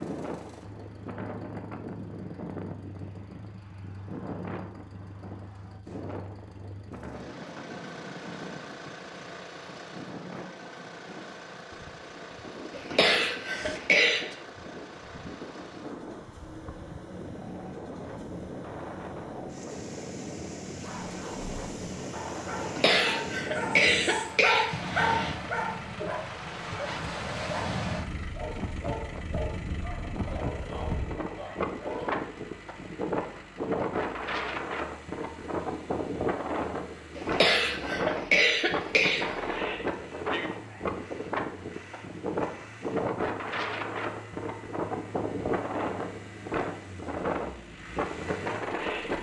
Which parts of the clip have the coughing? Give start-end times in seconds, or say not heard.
12.7-14.2, 22.6-25.4, 37.1-39.5.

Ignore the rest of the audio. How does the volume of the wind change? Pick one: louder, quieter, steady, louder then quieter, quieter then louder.
louder.